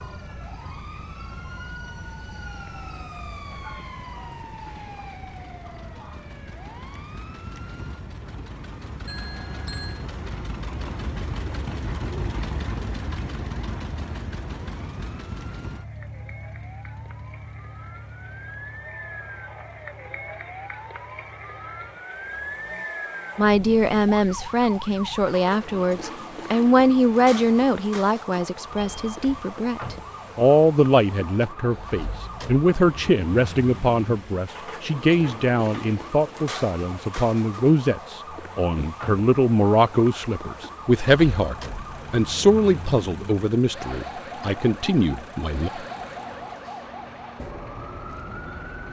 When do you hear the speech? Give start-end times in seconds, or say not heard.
23.4-45.7.